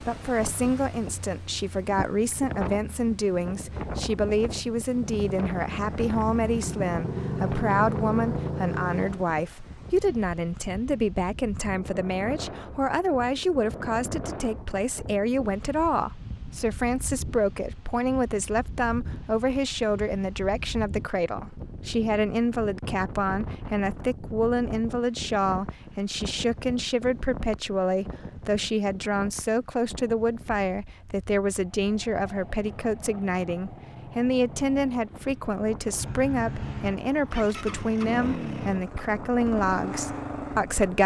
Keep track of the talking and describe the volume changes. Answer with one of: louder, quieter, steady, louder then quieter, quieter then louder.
steady.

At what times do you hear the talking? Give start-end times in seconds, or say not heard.
0.0-41.0.